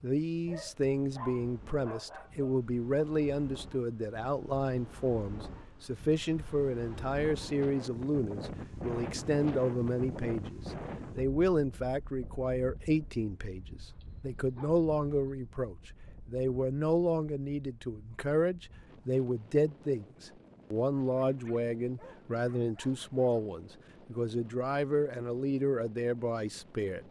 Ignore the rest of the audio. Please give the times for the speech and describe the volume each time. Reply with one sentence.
You can hear the speech from 0.0 to 27.0 s, at a steady volume.